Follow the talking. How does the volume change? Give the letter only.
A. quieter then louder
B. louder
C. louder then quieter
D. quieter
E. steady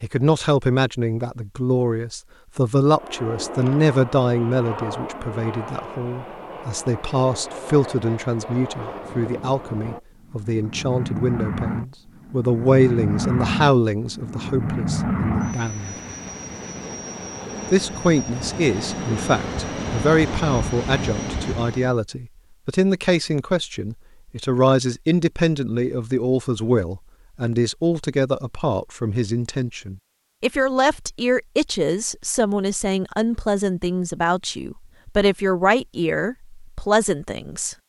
E.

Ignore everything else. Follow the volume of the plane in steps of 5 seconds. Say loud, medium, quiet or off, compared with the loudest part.
medium, medium, loud, loud, loud, off, off, off.